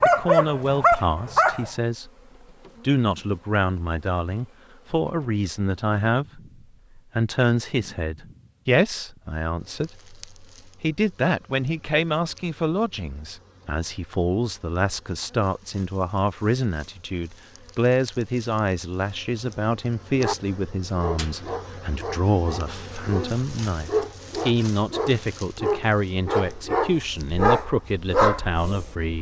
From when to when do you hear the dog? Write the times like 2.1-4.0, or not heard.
0.0-1.7, 20.1-29.1.